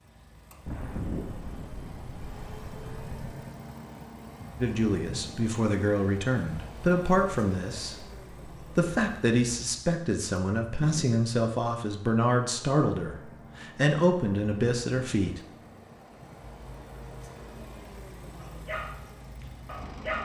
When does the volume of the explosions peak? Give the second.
1 s.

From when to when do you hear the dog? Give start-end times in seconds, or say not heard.
18.4-20.1.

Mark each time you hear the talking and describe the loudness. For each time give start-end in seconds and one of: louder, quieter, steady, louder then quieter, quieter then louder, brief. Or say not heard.
4.6-15.4 steady.